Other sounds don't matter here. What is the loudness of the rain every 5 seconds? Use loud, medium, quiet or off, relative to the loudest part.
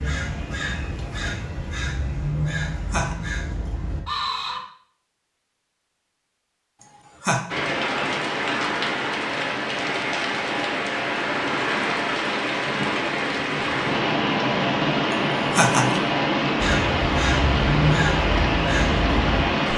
off, loud, loud, loud.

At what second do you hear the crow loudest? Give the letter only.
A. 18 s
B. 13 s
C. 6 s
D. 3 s
A.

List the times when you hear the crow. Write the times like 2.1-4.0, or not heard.
0.0-4.6, 16.6-19.4.